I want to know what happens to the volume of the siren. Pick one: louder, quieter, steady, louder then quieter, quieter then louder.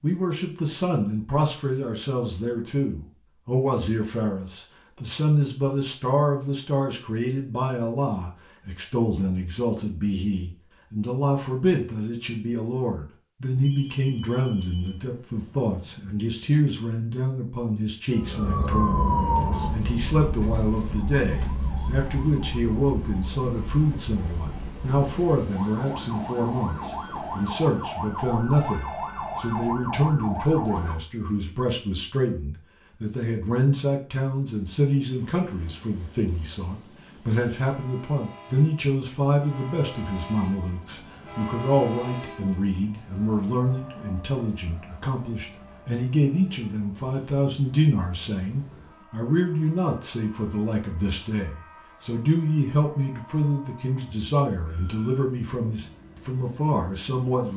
quieter then louder.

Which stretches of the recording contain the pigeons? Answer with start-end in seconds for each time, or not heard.
not heard.